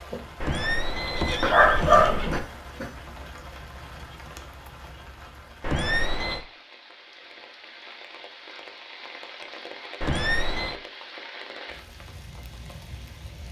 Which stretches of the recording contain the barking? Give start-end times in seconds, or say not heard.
1.4-2.9.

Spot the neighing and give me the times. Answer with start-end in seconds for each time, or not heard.
0.4-2.4, 5.6-6.5, 10.0-10.8.